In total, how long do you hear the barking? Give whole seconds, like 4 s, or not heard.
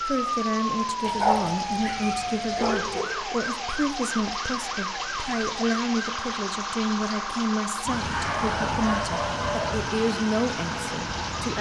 4 s.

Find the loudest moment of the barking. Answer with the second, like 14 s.
1 s.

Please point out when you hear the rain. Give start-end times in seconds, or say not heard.
0.0-11.5.